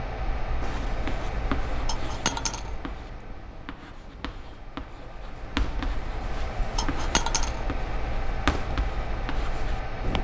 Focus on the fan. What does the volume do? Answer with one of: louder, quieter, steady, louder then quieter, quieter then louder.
quieter then louder.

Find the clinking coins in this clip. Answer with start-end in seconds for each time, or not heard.
1.9-2.7, 6.8-7.6.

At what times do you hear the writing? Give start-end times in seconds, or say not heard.
0.6-10.2.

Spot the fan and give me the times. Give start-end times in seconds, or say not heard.
0.0-10.2.